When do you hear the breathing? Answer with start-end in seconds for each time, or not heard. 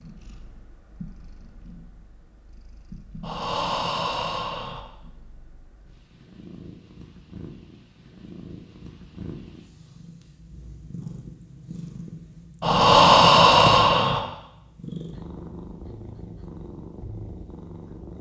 3.2-4.8, 12.6-14.2.